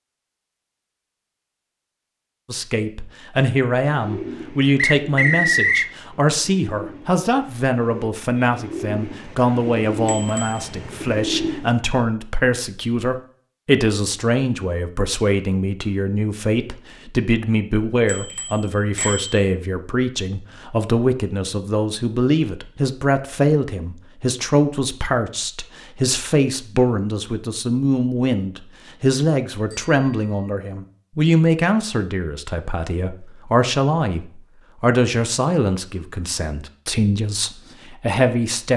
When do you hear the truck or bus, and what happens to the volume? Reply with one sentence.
The truck or bus can't be heard in this clip.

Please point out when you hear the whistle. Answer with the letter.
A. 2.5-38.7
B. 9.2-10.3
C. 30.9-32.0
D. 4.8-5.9
D.